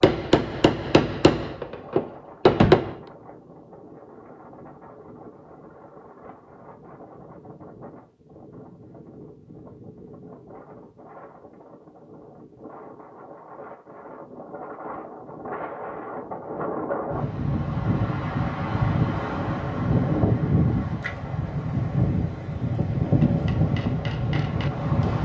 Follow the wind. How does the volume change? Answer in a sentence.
The volume of the wind goes up.